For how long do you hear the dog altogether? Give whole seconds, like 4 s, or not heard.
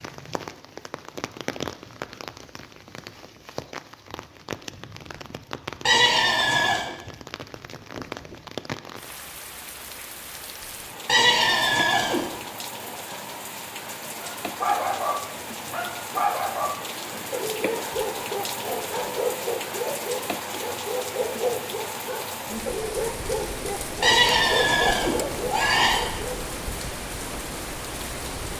12 s.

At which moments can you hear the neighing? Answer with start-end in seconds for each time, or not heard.
5.8-7.0, 11.1-12.3, 24.0-26.1.